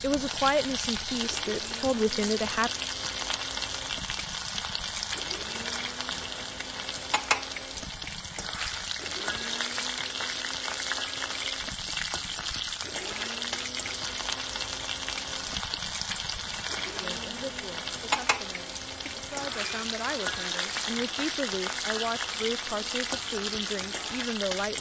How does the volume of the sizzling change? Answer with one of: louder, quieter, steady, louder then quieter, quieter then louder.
steady.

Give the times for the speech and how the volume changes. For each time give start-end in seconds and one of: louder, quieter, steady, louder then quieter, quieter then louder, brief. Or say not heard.
0.0-2.7 brief
17.0-24.7 louder.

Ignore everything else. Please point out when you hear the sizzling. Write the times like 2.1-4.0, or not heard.
0.0-24.7.